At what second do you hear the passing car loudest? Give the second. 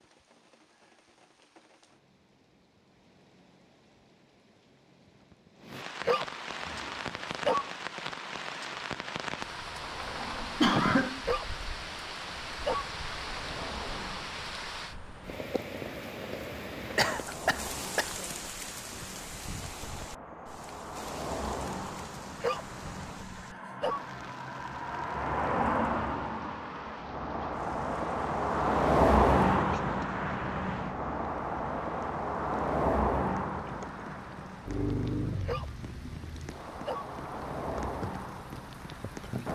29 s.